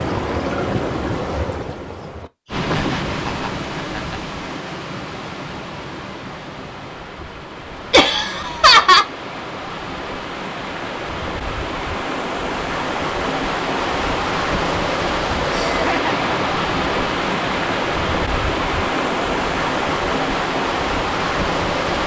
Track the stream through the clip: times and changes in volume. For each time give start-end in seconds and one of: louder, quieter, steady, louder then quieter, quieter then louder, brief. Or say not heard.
0.0-22.0 quieter then louder.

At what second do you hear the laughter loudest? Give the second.
9 s.